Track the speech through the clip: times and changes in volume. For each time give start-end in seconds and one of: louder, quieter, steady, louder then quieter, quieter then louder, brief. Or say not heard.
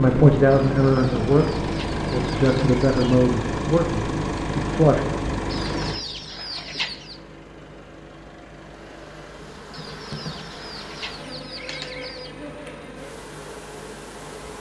0.0-5.0 quieter.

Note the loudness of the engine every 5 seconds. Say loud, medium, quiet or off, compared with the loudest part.
loud, medium, quiet.